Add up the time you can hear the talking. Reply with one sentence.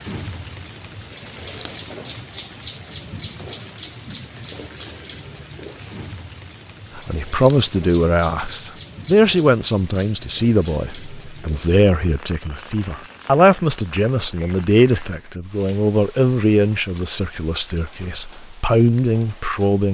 You can hear the talking for 13 seconds altogether.